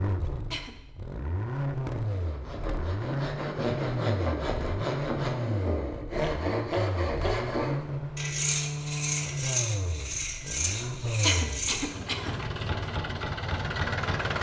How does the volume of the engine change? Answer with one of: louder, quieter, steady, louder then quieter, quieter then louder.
steady.